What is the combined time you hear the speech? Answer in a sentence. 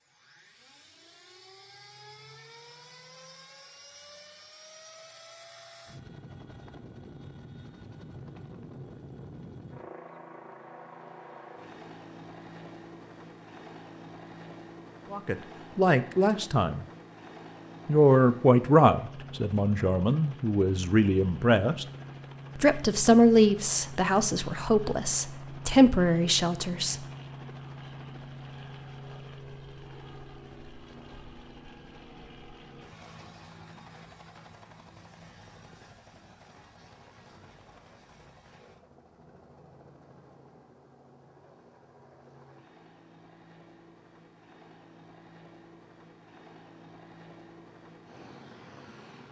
The speech can be heard for 10 seconds in total.